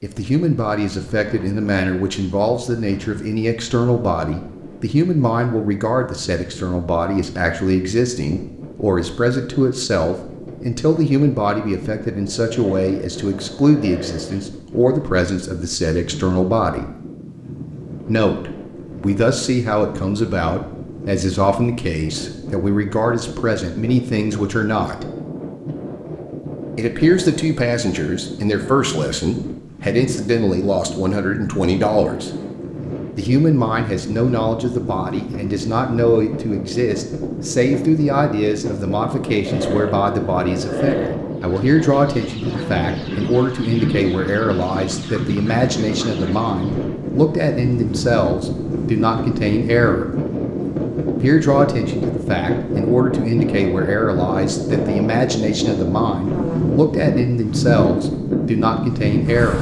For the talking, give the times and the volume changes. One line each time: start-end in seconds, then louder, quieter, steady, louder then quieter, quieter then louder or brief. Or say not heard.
0.0-16.9 steady
18.1-25.1 steady
26.8-32.3 steady
33.1-50.0 steady
51.2-59.5 steady.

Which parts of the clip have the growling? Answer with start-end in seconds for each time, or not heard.
12.5-14.4, 39.5-41.2.